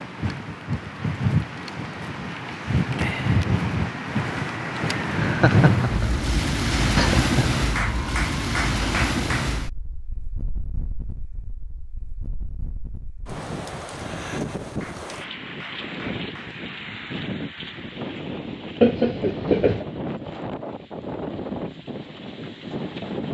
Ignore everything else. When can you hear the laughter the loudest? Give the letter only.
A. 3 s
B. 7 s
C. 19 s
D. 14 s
C.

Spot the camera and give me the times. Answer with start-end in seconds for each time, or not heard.
not heard.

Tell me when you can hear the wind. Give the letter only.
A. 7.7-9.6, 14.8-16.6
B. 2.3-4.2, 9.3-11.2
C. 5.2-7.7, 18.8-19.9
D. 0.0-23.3
D.